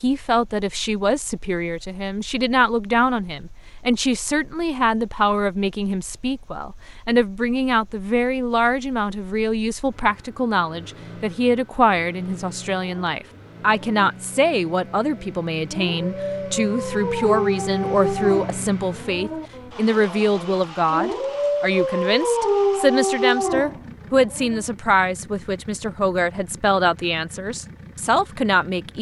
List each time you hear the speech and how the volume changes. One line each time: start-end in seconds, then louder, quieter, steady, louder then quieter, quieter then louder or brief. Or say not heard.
0.0-28.9 steady.